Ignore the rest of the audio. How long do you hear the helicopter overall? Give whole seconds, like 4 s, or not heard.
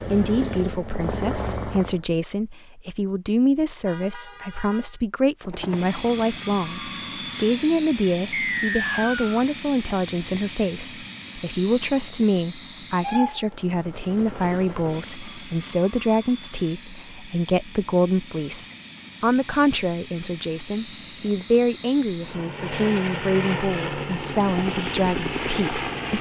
23 s.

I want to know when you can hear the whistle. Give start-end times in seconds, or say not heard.
8.3-9.3.